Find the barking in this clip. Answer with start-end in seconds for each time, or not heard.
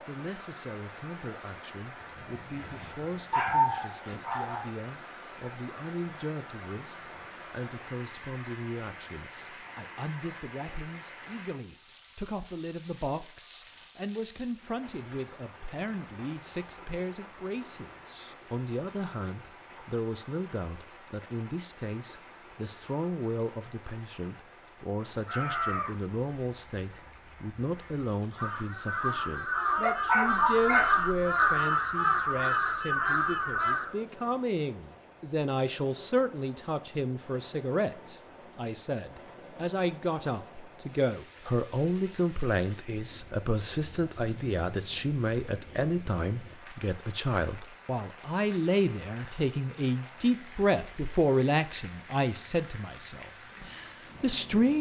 2.5-4.6, 29.8-30.9.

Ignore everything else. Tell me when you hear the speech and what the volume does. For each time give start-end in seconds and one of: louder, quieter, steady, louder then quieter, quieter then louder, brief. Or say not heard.
0.1-54.7 louder.